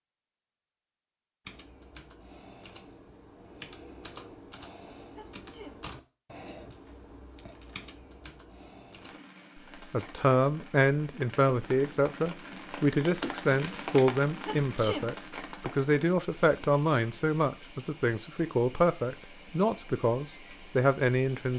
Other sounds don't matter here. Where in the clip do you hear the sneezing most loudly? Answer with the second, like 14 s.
15 s.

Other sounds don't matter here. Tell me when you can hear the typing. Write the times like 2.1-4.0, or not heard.
1.4-9.2.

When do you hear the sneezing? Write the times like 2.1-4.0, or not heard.
5.2-5.8, 14.4-15.2.